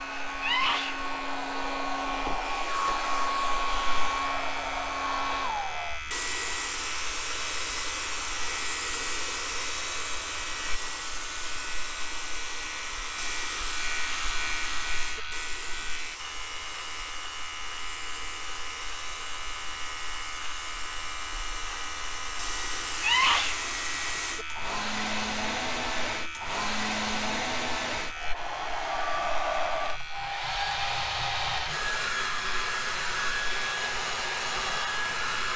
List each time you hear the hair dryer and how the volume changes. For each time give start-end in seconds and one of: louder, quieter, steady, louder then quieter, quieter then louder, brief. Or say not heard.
0.0-35.5 quieter then louder.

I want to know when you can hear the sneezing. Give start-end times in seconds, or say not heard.
0.4-1.0, 23.0-23.6.